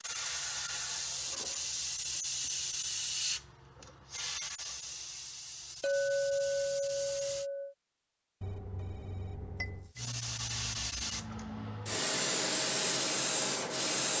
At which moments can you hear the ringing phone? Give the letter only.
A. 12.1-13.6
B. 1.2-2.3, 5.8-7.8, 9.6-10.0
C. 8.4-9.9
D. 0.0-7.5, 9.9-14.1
C.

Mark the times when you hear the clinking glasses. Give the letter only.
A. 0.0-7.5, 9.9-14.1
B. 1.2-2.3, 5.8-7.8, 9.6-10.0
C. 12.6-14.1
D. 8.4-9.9
B.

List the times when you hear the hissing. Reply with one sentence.
The hissing can be heard from 0.0 to 7.5 s and from 9.9 to 14.1 s.